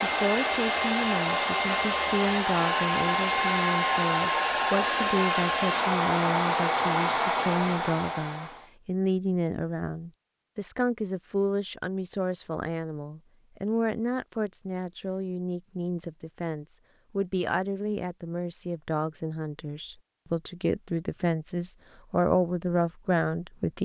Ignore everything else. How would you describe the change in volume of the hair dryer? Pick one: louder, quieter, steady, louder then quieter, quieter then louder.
steady.